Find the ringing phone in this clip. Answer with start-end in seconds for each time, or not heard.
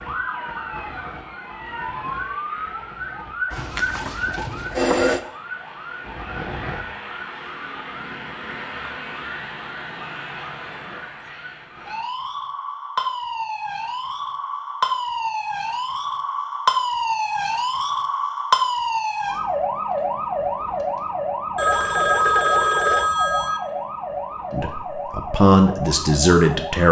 3.5-5.2, 21.6-23.6.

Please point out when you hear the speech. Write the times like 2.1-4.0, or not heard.
24.5-26.8.